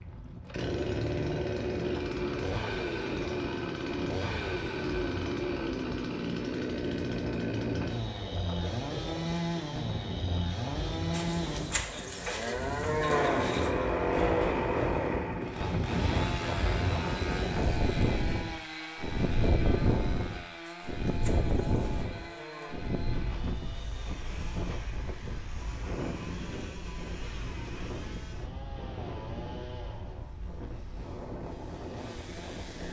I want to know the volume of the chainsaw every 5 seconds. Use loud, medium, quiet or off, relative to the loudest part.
loud, loud, loud, medium, quiet, quiet, quiet.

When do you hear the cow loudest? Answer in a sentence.
The volume of the cow peaks at 13 seconds.